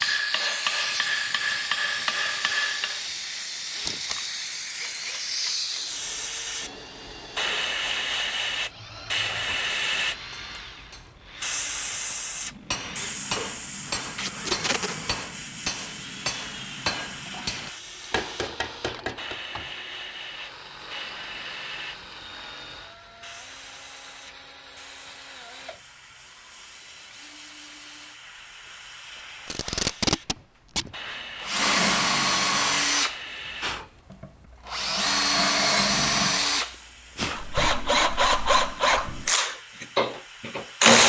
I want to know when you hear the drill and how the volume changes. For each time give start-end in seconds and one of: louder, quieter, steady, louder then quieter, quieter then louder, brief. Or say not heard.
0.0-41.0 louder.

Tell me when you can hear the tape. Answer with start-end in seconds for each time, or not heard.
3.8-4.2, 14.2-14.9, 29.4-30.9.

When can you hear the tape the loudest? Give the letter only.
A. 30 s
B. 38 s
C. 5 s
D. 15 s
A.